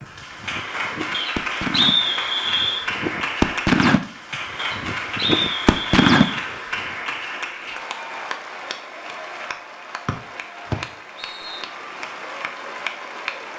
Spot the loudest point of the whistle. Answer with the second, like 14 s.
2 s.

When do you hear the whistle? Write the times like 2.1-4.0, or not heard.
1.1-2.9, 4.5-6.2, 10.1-11.7.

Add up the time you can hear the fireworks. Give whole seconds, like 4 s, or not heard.
6 s.